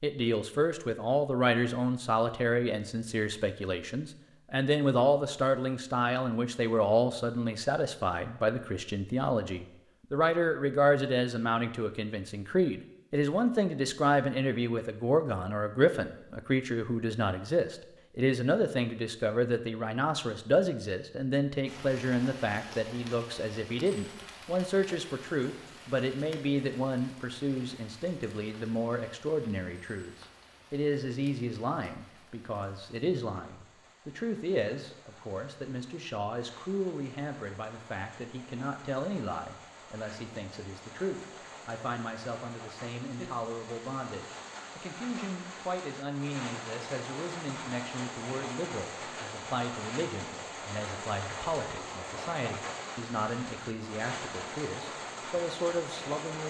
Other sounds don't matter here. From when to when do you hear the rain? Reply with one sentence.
The rain can be heard from 21.6 to 56.4 s.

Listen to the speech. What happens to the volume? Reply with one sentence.
The loudness of the speech goes down.